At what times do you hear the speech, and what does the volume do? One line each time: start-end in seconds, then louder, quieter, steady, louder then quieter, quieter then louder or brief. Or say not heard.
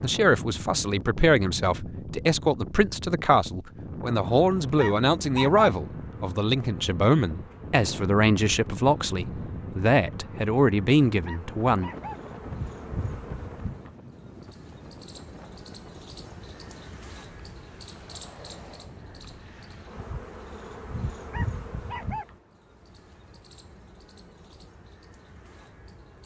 0.0-11.9 steady.